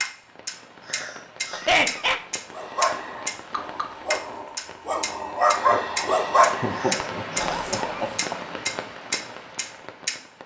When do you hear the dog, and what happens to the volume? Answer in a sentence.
The dog can be heard from 2.5 to 8.2 s, getting louder then quieter.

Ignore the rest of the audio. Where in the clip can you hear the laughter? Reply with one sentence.
You can hear the laughter from 1.6 to 2.2 s and from 6.6 to 8.3 s.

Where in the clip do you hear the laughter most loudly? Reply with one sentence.
The volume of the laughter peaks at 2 seconds.